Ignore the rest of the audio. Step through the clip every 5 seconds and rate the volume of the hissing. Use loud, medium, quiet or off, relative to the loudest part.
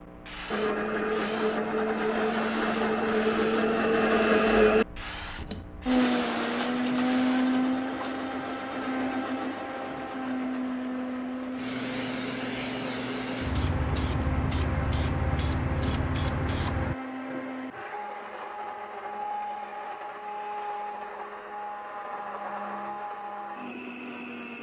medium, medium, loud, loud, off.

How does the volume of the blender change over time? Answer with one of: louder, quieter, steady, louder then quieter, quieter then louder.
quieter.